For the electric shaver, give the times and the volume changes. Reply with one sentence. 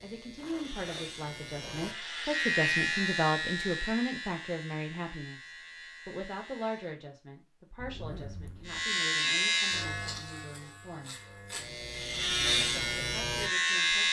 You can hear the electric shaver from 0.0 to 7.0 s, getting louder then quieter; and from 8.7 to 14.0 s, getting quieter then louder.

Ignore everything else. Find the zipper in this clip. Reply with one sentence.
You can hear the zipper from 0.3 to 1.9 s and from 7.8 to 8.8 s.